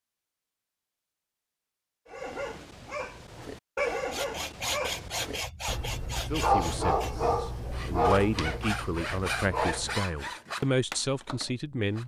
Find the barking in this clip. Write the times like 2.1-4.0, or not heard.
2.0-10.1.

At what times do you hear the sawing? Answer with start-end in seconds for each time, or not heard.
3.9-12.0.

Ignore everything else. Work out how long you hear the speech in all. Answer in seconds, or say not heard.
6 s.